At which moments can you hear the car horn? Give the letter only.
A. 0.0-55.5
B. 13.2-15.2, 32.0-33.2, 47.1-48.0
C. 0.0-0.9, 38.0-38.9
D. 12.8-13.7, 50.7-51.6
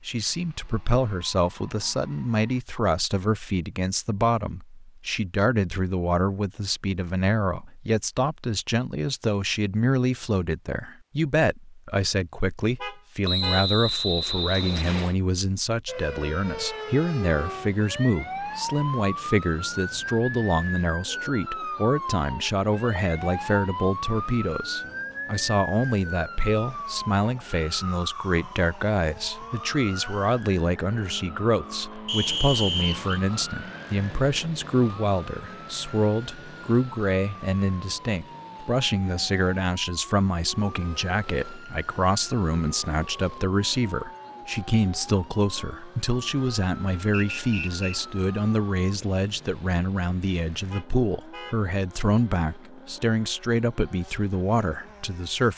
D.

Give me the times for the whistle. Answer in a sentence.
You can hear the whistle from 13.2 to 15.2 s, from 32.0 to 33.2 s and from 47.1 to 48.0 s.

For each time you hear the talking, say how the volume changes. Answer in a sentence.
You can hear the talking from 0.0 to 55.5 s, at a steady volume.